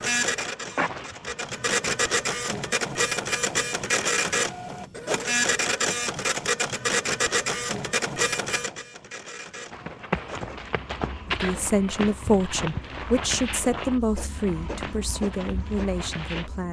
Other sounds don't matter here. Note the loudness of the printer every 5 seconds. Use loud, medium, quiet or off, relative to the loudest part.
loud, loud, quiet, quiet.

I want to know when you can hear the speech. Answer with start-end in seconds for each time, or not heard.
11.2-16.6.